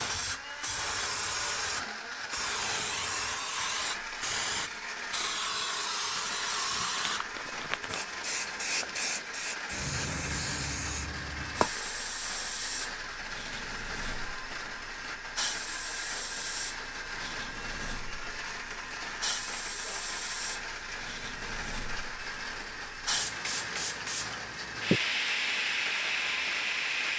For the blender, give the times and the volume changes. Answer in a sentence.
You can hear the blender from 0.0 to 27.1 s, at a steady volume.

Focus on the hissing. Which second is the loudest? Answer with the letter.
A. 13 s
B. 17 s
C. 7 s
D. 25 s
D.